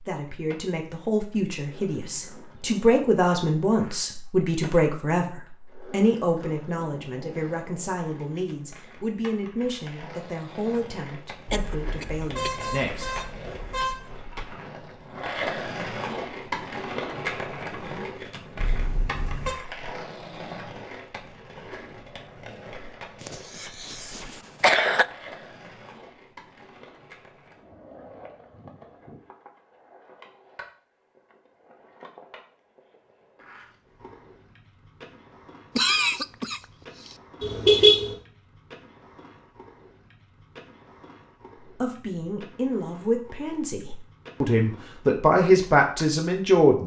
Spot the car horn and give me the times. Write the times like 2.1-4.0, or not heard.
11.4-14.1, 18.6-19.6, 37.4-38.1.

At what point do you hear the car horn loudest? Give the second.
38 s.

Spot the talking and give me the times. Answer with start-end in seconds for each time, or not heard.
0.0-13.2, 41.8-46.8.